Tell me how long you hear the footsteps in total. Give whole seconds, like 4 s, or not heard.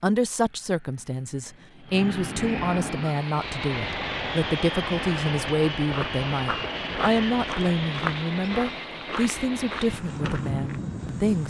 5 s.